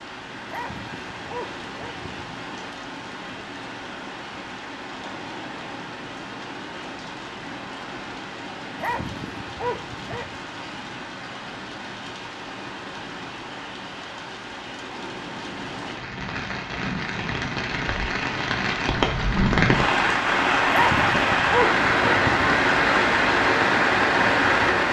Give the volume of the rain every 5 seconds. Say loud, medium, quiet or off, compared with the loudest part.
quiet, quiet, quiet, medium, loud.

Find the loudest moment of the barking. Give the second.
21 s.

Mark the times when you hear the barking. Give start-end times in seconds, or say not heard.
0.5-2.1, 8.8-10.4, 20.7-22.6.